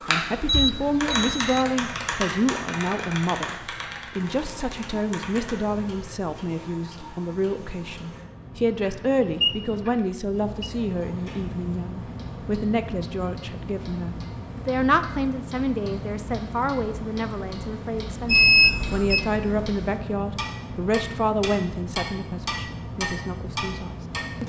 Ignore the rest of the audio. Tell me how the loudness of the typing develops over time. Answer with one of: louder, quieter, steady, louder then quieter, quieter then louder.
quieter.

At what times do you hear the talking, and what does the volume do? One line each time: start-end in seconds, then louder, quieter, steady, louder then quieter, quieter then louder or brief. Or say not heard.
0.1-24.4 steady.